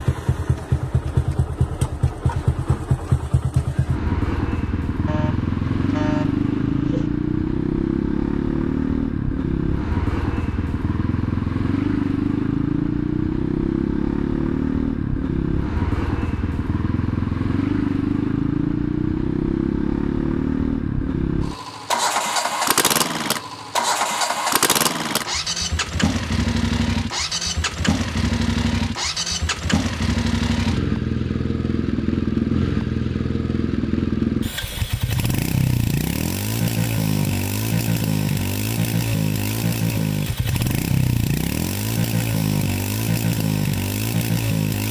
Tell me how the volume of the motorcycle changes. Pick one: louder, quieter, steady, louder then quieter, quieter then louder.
steady.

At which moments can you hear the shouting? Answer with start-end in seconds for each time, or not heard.
not heard.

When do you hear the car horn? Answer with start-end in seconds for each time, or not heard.
5.0-7.1.